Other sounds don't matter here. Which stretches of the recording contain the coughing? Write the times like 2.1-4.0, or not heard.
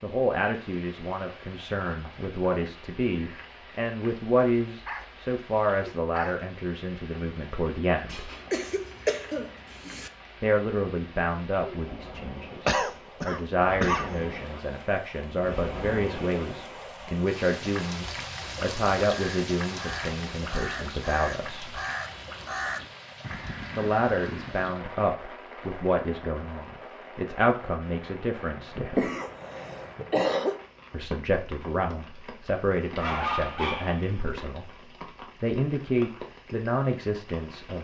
8.1-10.1, 12.7-14.2, 28.6-30.6.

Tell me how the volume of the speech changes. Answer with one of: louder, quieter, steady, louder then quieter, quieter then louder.
steady.